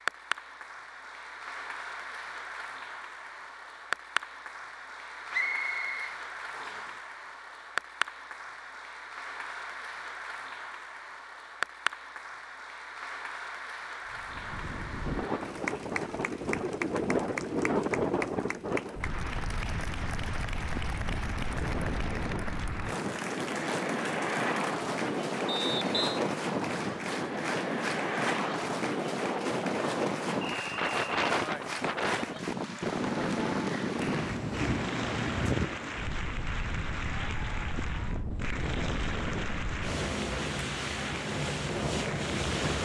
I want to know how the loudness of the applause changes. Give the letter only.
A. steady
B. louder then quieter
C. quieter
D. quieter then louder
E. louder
A.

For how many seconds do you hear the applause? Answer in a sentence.
You can hear the applause for 43 seconds altogether.